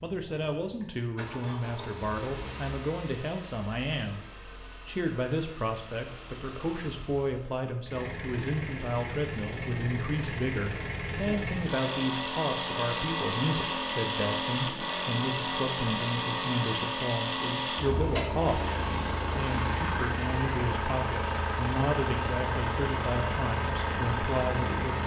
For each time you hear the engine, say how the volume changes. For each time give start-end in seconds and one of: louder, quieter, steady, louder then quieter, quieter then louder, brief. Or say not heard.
0.0-25.0 louder.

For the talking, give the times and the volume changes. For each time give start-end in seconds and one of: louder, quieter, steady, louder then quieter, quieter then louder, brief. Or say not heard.
0.0-4.2 steady
4.8-25.0 steady.